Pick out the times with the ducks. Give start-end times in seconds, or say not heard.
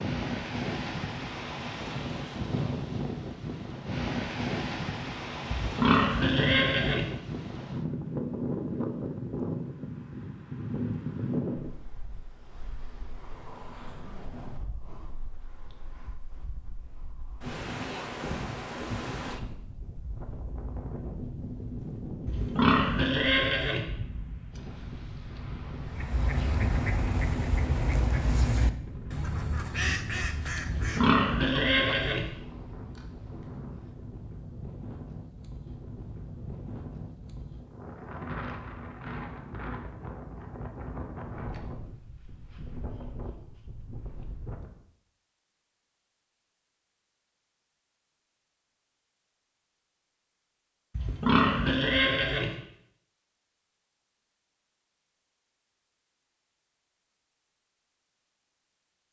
25.8-32.1.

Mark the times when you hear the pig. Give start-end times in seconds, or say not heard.
5.5-7.1, 22.2-23.8, 30.6-32.3, 51.0-52.5.